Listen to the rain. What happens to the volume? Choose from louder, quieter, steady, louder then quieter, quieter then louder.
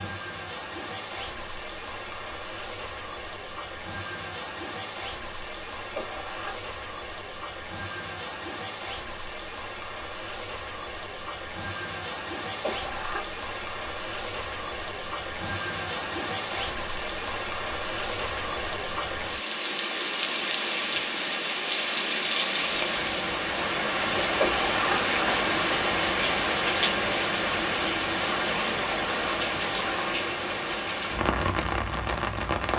louder.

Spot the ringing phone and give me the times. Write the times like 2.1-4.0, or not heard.
not heard.